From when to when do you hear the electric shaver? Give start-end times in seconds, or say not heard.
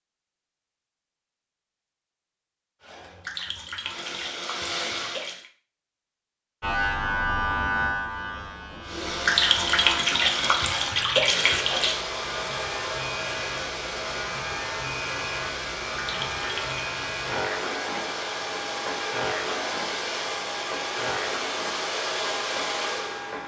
6.6-23.4.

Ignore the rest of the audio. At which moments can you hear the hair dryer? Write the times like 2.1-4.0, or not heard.
2.8-5.4, 8.8-23.4.